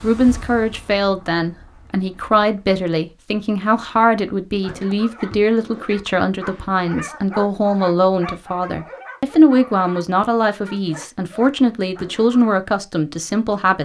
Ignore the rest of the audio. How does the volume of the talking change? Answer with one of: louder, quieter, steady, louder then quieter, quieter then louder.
steady.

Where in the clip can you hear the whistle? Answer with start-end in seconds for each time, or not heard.
not heard.